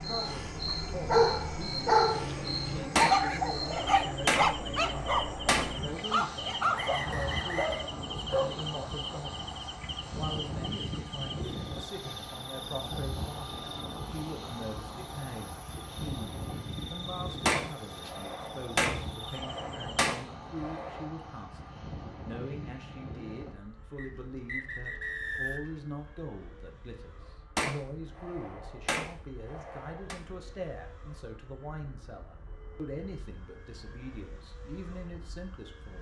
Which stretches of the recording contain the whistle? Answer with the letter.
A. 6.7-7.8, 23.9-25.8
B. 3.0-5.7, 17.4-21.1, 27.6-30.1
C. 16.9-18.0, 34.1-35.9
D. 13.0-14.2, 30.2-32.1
A.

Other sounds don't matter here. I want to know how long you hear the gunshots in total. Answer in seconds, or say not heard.
9 s.